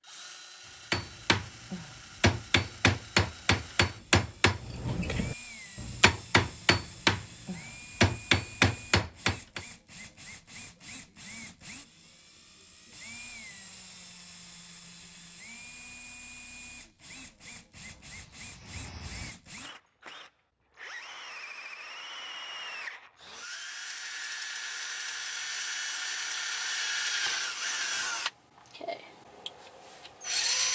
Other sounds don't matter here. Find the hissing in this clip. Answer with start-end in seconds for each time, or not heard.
17.7-19.4.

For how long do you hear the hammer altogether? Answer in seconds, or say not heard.
9 s.